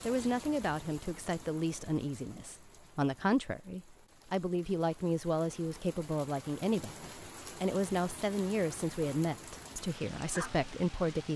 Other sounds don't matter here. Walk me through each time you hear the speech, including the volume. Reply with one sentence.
You can hear the speech from 0.0 to 11.3 s, at a steady volume.